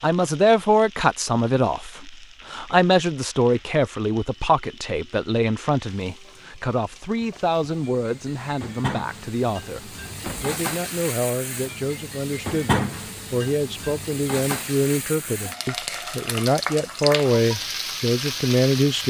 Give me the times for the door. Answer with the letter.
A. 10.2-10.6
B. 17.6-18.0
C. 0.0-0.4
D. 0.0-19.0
A.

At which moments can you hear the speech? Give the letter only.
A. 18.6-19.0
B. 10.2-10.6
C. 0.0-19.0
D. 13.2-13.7
C.